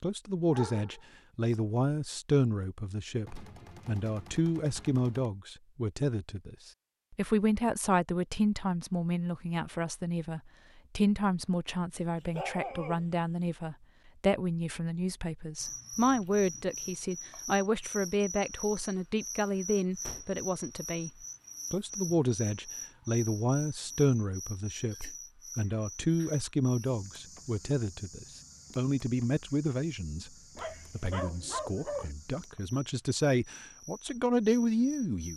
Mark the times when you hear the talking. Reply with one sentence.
The talking can be heard from 0.0 to 21.1 s, from 21.7 to 30.3 s and from 30.9 to 35.3 s.